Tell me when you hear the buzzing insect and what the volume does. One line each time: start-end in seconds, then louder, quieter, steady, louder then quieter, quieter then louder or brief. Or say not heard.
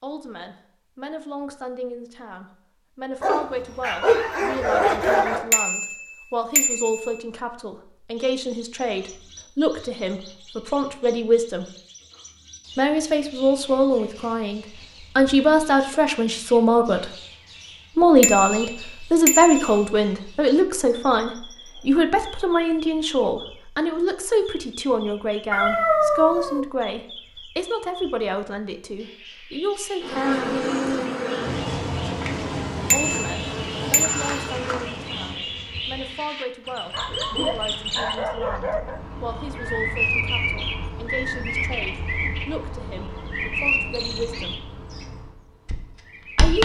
30.0-36.2 quieter.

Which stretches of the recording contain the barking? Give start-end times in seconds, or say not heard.
3.2-5.5, 25.5-26.6, 36.9-39.0.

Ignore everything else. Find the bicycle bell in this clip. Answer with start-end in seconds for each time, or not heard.
5.5-7.2, 18.2-19.9, 32.9-34.6.